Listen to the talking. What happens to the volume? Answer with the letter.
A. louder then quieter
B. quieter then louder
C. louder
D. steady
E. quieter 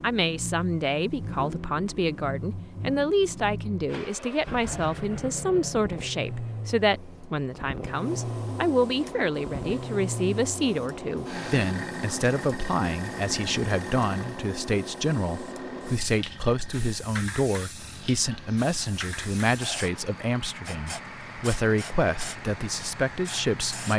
D.